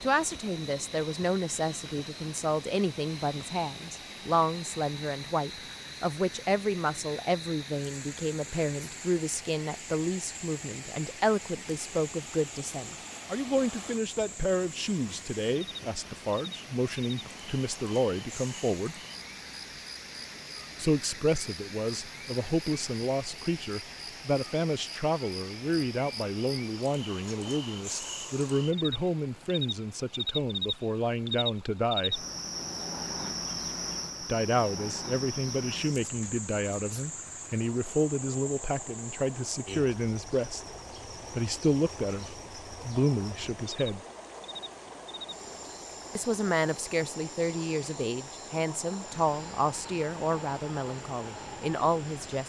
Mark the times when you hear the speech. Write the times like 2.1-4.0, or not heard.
0.0-19.0, 20.8-32.2, 34.2-40.7, 41.3-44.0, 46.1-52.4.